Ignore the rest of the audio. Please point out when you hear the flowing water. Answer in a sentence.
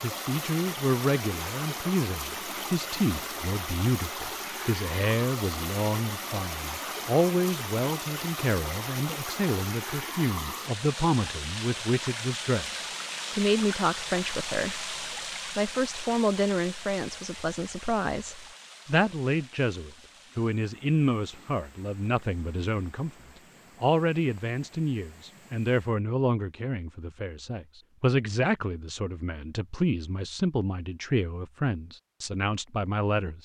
The flowing water can be heard from 0.0 to 26.0 s.